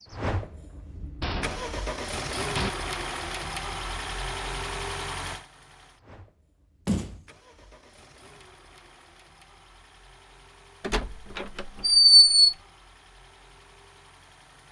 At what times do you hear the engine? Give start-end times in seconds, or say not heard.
0.0-14.6.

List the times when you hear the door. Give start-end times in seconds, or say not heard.
1.2-2.7, 6.8-7.2, 10.8-12.6.